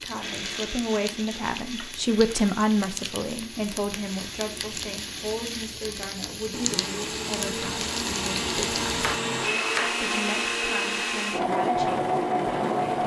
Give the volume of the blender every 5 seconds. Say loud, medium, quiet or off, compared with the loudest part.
quiet, medium, loud.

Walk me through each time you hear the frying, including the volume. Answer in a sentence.
The frying can be heard from 0.0 to 9.2 s, getting louder.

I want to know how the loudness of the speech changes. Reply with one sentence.
The volume of the speech goes down.